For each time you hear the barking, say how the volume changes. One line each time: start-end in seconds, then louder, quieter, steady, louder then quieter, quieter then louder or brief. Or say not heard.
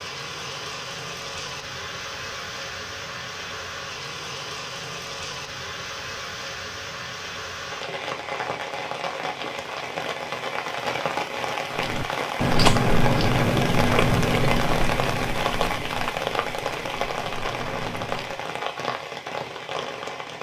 not heard.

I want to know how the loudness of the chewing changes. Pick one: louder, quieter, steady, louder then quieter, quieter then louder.
quieter.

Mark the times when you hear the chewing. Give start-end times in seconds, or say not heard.
11.8-18.4.